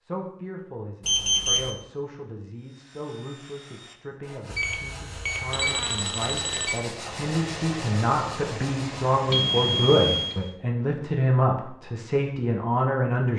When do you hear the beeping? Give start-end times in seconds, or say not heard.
1.0-1.7, 4.5-6.8, 9.3-10.3.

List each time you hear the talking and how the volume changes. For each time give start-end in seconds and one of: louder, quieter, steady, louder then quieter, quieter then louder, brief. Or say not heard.
0.0-13.3 louder.